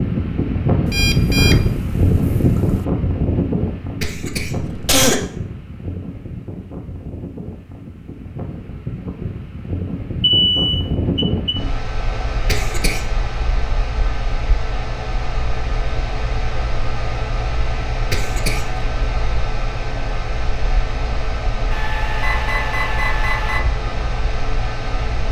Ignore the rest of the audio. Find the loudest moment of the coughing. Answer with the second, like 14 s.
5 s.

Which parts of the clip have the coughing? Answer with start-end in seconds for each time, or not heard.
4.0-5.2, 12.4-13.1, 18.1-18.8.